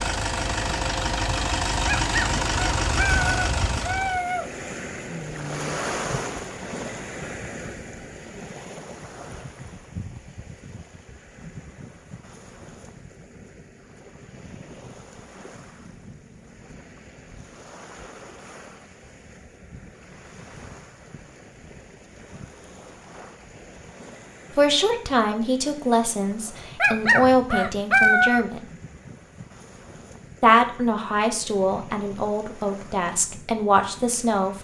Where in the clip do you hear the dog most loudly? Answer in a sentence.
The volume of the dog peaks at 28 seconds.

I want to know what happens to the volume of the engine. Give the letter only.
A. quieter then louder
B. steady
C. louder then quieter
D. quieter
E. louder
B.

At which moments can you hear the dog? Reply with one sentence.
You can hear the dog from 1.9 to 4.5 s and from 26.8 to 28.4 s.